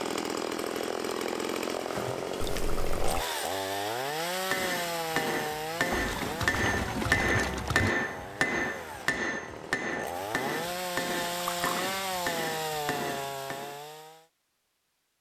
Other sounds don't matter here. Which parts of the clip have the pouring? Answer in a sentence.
The pouring can be heard from 2.4 to 3.2 s, from 5.9 to 8.0 s and from 11.4 to 11.8 s.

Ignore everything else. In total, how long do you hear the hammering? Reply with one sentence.
You can hear the hammering for 10 seconds altogether.